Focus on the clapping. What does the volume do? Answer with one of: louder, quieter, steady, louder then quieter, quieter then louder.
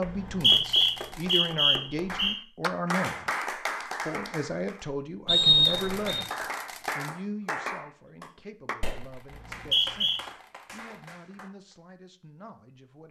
louder then quieter.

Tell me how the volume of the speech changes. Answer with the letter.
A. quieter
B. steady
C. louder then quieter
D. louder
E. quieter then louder
A.